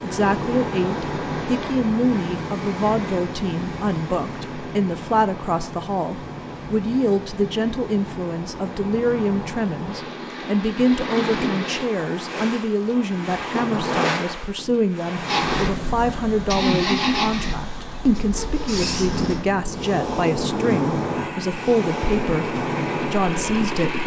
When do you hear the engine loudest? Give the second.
17 s.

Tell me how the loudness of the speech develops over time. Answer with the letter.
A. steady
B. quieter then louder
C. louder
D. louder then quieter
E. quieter
A.